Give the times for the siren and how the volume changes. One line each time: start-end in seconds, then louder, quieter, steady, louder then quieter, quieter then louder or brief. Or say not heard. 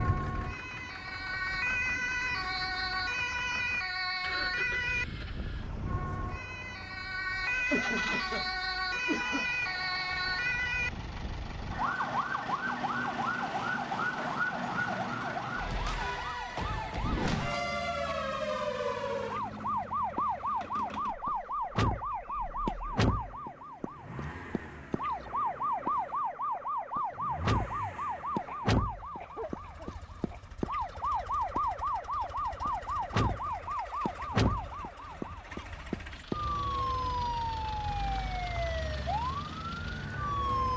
0.0-40.7 steady.